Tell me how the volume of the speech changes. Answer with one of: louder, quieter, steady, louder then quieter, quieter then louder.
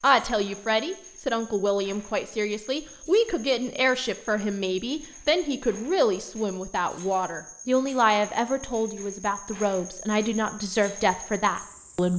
steady.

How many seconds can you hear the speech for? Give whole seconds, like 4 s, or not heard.
12 s.